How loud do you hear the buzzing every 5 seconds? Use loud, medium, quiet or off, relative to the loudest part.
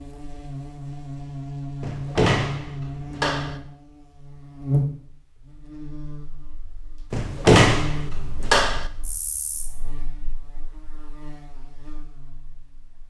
loud, medium, quiet.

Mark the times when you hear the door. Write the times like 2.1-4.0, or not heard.
1.8-3.6, 7.1-8.9.